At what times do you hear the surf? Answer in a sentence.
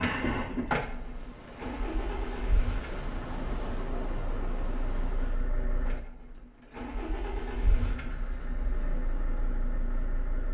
The surf can be heard from 0.0 to 5.5 s.